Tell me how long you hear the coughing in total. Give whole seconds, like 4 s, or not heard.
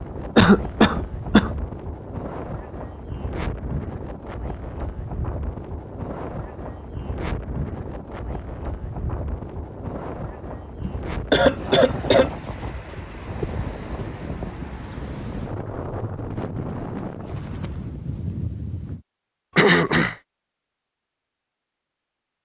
3 s.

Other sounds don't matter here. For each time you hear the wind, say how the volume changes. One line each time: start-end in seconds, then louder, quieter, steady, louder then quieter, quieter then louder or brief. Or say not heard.
0.0-19.1 steady.